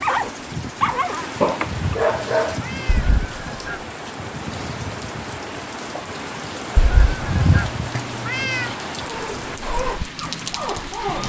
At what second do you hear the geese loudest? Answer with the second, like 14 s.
7 s.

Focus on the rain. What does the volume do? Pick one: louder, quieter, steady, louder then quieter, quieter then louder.
steady.